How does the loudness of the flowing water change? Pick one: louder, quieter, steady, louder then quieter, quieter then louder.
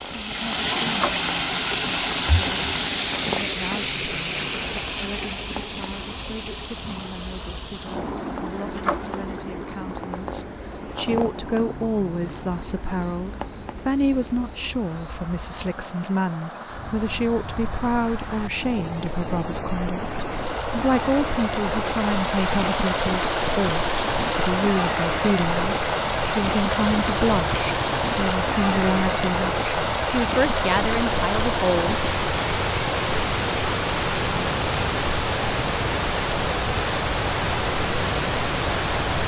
quieter then louder.